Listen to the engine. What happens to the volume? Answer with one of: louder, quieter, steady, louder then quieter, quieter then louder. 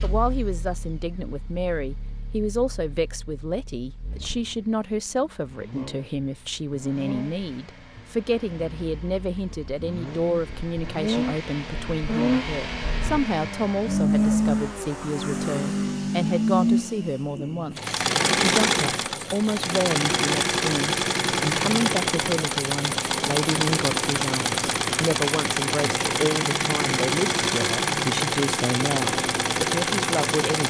louder.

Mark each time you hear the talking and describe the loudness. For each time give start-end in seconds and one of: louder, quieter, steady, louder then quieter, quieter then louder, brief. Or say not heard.
0.0-30.6 steady.